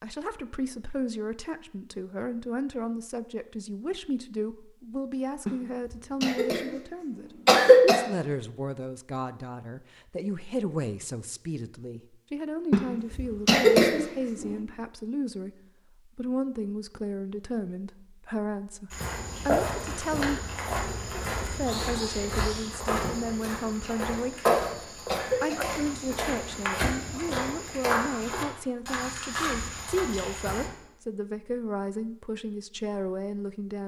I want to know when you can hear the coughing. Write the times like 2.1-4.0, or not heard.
6.2-6.8, 7.5-8.1, 12.7-14.7, 23.8-24.4, 25.1-25.6.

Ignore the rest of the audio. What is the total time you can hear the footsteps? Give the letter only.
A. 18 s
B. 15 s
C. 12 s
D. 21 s
C.